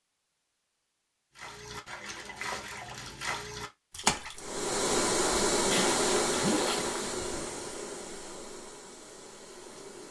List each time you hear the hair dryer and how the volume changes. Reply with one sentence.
You can hear the hair dryer from 4.3 to 10.0 s, getting quieter.